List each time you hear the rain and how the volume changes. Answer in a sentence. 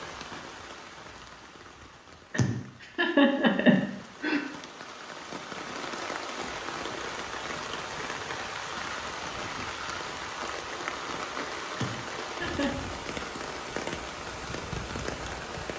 The rain can be heard from 0.0 to 15.7 s, getting louder.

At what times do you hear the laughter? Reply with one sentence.
The laughter can be heard from 2.3 to 4.4 s and from 11.8 to 12.8 s.